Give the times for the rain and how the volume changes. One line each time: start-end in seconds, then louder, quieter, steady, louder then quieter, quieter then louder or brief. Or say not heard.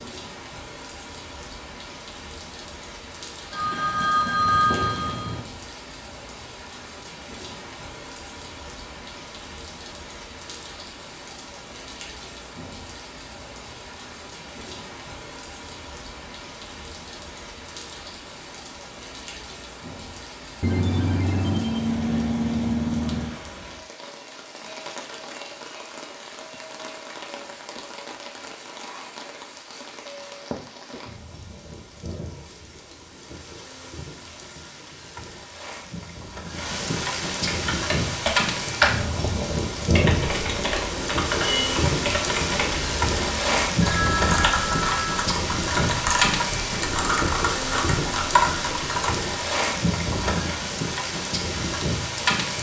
0.0-52.5 louder.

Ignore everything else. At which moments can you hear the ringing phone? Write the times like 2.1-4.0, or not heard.
3.5-5.5, 20.6-23.4, 43.8-45.3.